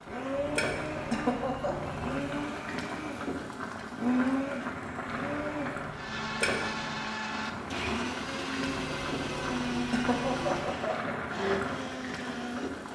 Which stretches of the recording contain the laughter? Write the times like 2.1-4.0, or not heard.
1.1-1.9, 9.9-11.2.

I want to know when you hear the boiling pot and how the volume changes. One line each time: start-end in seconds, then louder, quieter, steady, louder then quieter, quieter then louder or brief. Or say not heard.
0.0-12.9 steady.